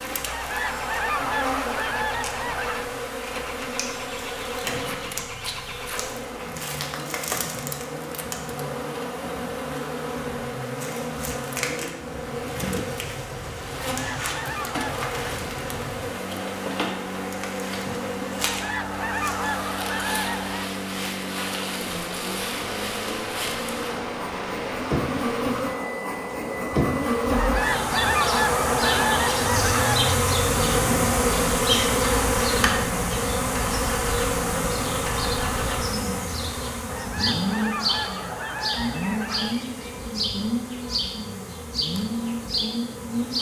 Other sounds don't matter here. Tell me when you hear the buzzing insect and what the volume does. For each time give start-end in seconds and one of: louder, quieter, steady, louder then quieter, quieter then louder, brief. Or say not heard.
0.0-43.3 louder then quieter.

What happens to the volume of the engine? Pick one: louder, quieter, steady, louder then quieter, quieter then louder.
louder.